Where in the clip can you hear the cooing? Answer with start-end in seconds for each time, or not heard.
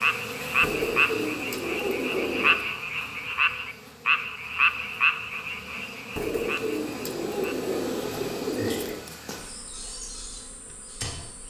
0.6-2.6, 6.2-9.1.